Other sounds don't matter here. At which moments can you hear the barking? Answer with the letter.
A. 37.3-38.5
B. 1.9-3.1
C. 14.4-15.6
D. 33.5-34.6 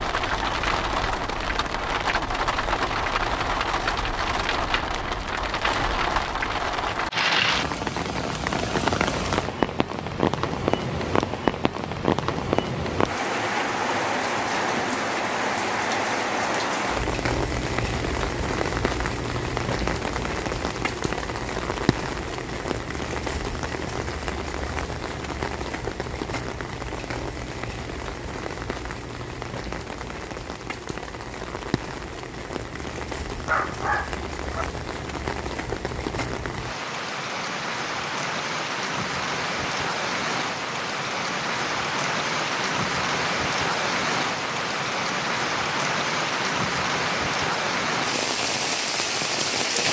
D.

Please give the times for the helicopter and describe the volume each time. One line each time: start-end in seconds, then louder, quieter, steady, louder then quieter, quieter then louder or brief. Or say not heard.
not heard.